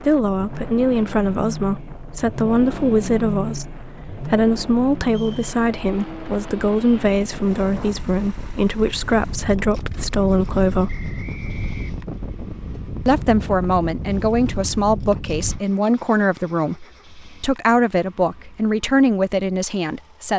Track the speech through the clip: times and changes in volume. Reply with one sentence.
The speech can be heard from 0.0 to 11.1 s, at a steady volume; and from 13.1 to 20.3 s, at a steady volume.